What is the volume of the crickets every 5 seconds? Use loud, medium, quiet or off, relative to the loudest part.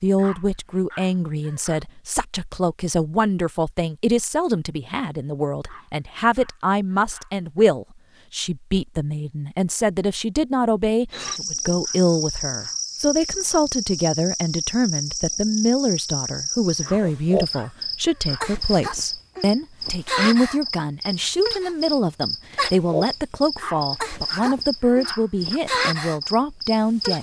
off, off, loud, loud, loud, loud.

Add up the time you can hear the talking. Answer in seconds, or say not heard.
27 s.